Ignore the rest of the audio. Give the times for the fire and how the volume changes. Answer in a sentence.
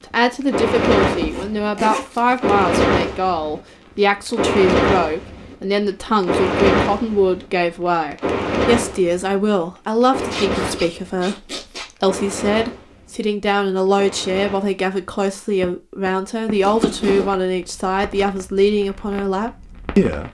The fire can be heard from 0.2 to 20.2 s, getting quieter.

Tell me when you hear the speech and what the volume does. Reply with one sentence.
The speech can be heard from 0.0 to 20.2 s, at a steady volume.